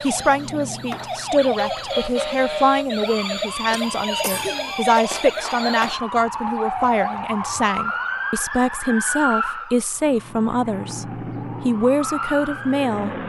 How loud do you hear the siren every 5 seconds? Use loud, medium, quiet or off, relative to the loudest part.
loud, loud, medium.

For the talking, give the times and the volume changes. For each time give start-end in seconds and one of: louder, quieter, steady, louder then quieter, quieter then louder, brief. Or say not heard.
0.0-13.1 steady.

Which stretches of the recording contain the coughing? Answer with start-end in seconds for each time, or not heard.
3.7-4.8.